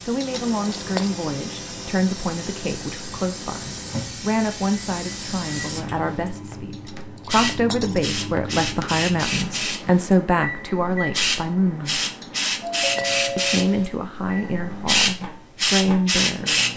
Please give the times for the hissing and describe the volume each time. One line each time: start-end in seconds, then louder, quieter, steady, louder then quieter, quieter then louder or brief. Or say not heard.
0.0-16.7 louder.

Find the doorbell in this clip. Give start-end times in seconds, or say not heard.
12.6-13.9.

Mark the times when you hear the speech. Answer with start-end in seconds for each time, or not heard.
0.1-12.1, 13.3-16.6.